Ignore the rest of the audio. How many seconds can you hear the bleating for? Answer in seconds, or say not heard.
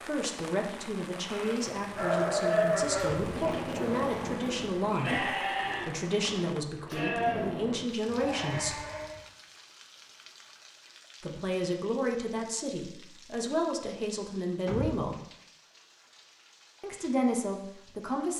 8 s.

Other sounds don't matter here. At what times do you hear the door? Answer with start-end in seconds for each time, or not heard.
3.0-4.5, 6.8-7.8, 14.7-15.1.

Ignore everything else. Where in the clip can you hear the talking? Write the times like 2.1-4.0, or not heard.
0.1-8.8, 11.2-15.2, 16.8-18.3.